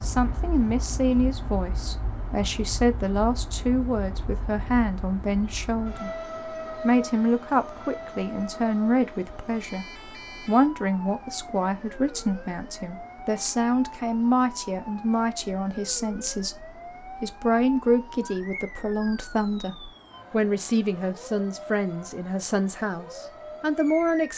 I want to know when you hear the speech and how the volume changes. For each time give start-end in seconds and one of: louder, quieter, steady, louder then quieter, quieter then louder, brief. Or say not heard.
0.0-24.3 steady.